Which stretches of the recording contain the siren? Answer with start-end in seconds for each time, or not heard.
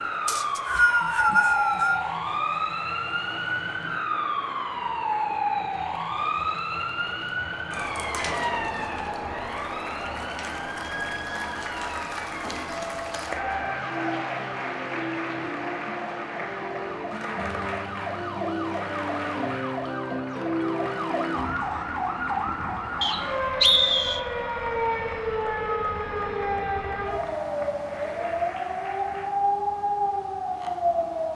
0.0-31.3.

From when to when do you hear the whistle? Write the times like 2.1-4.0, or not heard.
0.2-2.0, 23.0-24.2.